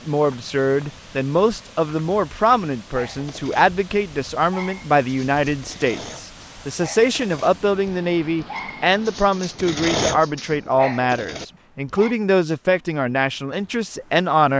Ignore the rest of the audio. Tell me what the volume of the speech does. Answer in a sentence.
The loudness of the speech stays about the same.